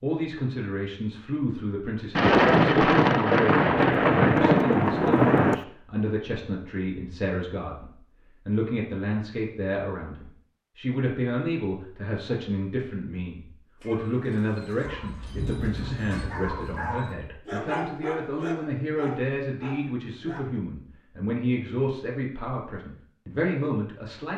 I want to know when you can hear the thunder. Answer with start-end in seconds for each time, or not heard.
2.1-5.5, 15.1-16.6.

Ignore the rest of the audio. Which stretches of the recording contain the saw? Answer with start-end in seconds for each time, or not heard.
not heard.